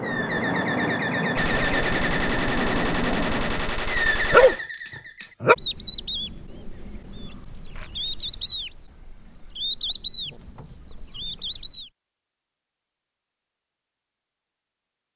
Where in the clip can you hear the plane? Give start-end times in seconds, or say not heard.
0.0-3.8.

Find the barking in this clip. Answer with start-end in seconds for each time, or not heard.
4.1-5.5.